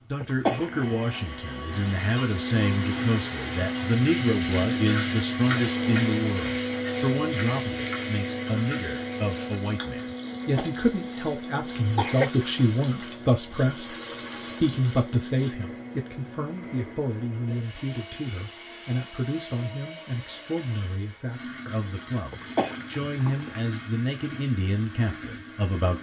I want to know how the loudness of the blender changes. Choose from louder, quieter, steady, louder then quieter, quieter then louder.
quieter.